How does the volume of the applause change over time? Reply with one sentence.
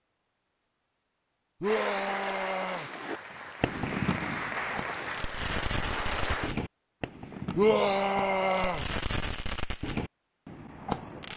The volume of the applause goes down, then up.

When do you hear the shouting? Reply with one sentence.
The shouting can be heard from 1.6 to 2.9 s and from 7.5 to 8.8 s.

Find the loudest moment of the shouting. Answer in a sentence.
The loudest moment of the shouting is at 8 seconds.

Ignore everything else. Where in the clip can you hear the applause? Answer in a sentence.
The applause can be heard from 1.6 to 6.5 s.